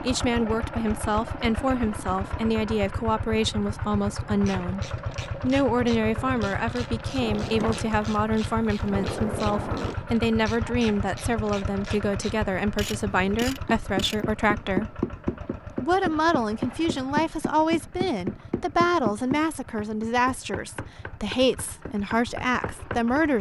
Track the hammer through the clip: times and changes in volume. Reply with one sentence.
You can hear the hammer from 13.4 to 23.3 s, getting quieter.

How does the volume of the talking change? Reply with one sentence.
The volume of the talking stays about the same.